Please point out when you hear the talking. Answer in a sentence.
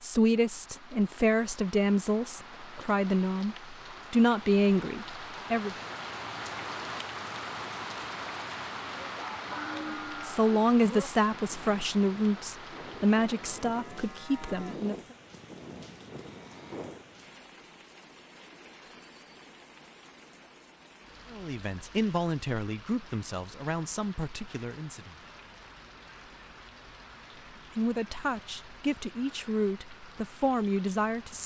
The talking can be heard from 0.0 to 5.8 s, from 9.9 to 14.9 s, from 21.3 to 25.2 s and from 27.7 to 31.4 s.